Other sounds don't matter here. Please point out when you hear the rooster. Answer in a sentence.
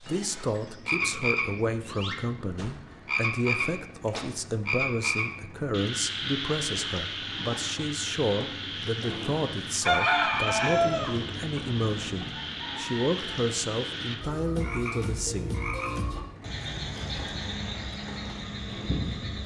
The rooster can be heard from 9.8 to 13.2 s.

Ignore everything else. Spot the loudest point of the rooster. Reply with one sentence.
The volume of the rooster peaks at 10 seconds.